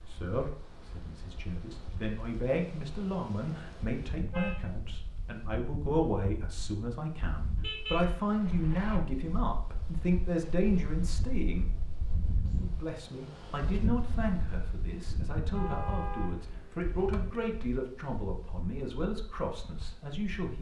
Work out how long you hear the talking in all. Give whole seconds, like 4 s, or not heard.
20 s.